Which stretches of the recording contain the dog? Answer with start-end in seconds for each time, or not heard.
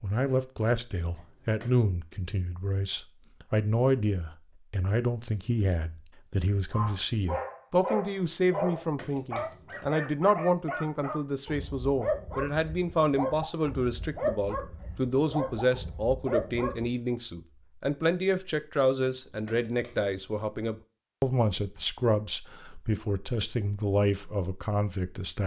6.7-16.9.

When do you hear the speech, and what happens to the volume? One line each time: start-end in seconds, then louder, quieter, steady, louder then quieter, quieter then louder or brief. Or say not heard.
0.0-25.4 steady.